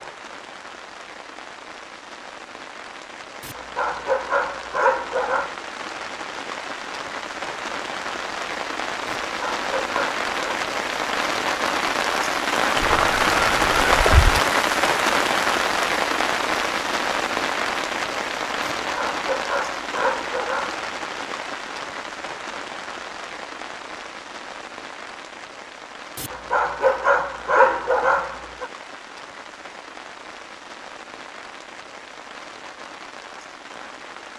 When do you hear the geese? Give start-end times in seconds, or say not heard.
12.8-14.4.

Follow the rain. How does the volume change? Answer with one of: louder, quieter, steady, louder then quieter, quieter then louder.
louder then quieter.